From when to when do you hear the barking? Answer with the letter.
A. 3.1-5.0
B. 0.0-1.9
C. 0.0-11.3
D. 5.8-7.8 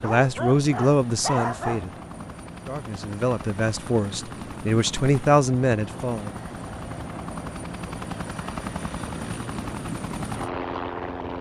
B.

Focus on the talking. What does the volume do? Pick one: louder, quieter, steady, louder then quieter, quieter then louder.
quieter then louder.